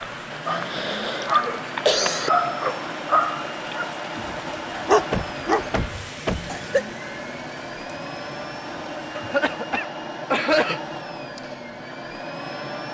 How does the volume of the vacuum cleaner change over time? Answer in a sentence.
The volume of the vacuum cleaner stays about the same.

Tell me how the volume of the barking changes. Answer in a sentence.
The loudness of the barking goes down, then up.